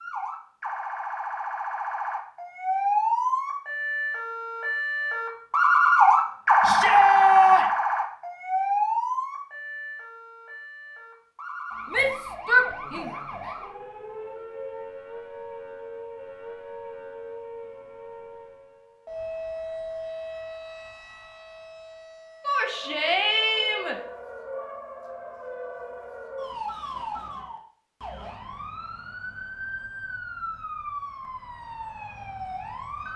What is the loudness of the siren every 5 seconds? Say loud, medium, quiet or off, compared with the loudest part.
medium, loud, quiet, quiet, quiet, quiet, quiet.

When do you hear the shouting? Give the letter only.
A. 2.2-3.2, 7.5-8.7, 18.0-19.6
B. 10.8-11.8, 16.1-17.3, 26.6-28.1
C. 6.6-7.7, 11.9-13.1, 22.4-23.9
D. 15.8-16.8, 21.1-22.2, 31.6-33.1
C.